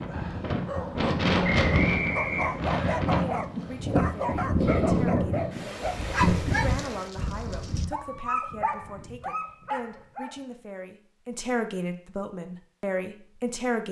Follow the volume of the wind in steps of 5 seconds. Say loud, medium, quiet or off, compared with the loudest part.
loud, loud, off.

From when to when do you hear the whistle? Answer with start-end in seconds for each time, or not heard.
1.4-3.0.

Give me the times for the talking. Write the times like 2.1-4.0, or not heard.
3.2-13.8.